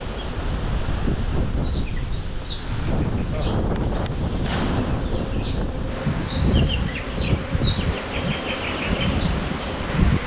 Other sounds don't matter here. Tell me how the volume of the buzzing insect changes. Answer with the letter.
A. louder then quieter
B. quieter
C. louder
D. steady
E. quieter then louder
C.